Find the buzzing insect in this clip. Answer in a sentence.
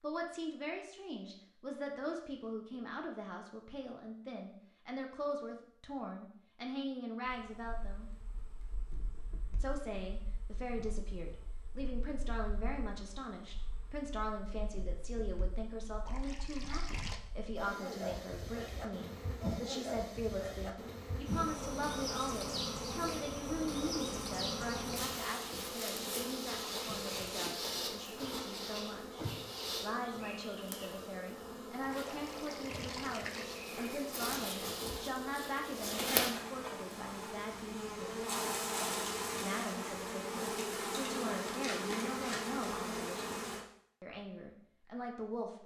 The buzzing insect can be heard from 7.2 to 43.6 s.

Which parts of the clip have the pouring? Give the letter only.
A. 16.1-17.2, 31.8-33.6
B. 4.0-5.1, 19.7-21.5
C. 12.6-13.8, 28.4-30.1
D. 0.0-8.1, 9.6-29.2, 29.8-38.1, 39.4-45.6
A.